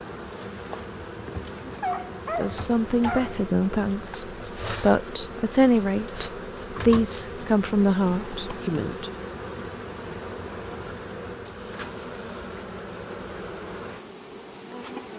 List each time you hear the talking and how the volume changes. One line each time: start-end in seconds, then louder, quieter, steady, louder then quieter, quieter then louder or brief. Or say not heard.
2.4-9.1 steady.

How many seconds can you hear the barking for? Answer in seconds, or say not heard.
2 s.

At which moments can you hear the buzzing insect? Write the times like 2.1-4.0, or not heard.
0.0-15.1.